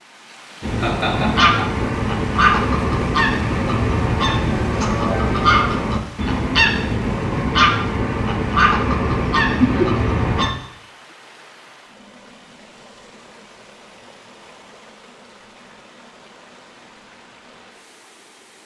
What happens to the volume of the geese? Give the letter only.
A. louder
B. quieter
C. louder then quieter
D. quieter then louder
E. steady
E.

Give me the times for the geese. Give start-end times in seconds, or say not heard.
0.6-10.5.